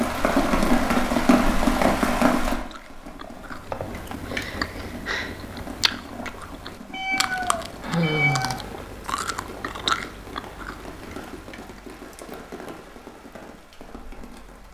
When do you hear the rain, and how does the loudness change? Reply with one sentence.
You can hear the rain from 0.0 to 14.6 s, getting quieter.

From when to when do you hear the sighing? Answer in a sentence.
You can hear the sighing from 3.6 to 5.3 s and from 7.8 to 8.7 s.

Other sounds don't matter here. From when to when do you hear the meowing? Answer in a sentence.
The meowing can be heard from 6.9 to 8.6 s.